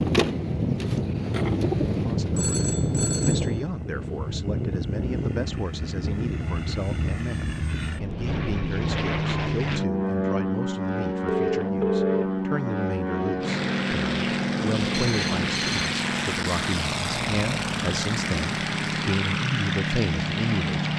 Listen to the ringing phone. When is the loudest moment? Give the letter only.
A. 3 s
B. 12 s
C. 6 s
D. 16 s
B.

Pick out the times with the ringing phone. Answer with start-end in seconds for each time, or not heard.
2.4-3.5, 11.3-12.2, 14.9-15.9.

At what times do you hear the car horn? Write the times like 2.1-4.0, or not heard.
not heard.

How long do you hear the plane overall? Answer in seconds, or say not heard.
21 s.